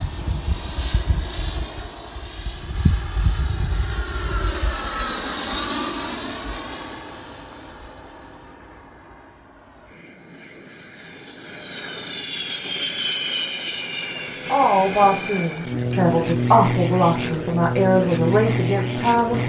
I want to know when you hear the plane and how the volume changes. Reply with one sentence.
You can hear the plane from 0.0 to 19.4 s, getting quieter then louder.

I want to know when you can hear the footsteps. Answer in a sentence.
You can't hear the footsteps here.